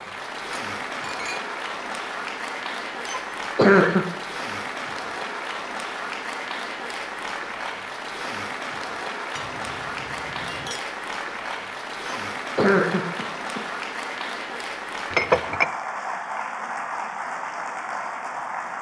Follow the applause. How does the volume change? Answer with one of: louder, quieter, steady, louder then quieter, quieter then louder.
steady.